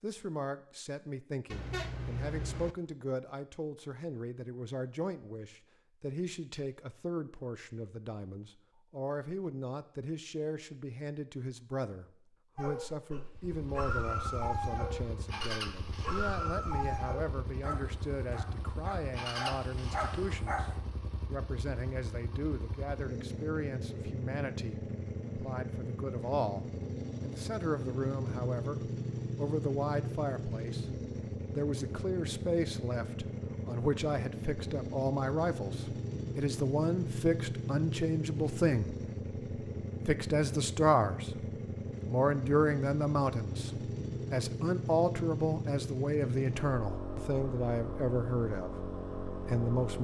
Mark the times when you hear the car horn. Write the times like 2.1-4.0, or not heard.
1.5-2.8.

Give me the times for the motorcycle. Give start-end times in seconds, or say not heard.
13.3-49.9.